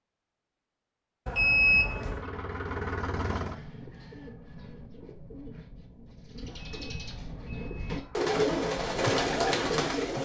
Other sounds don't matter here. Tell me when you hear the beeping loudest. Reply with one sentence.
The loudest moment of the beeping is at 2 seconds.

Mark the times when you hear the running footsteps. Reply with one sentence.
You can't hear the running footsteps here.